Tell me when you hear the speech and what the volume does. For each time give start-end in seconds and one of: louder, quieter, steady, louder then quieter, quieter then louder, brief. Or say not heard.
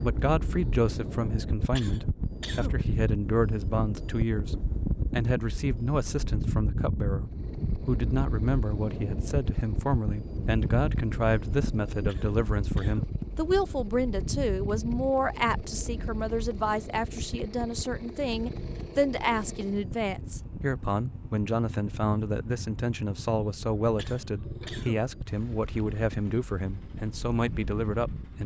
0.0-28.4 steady.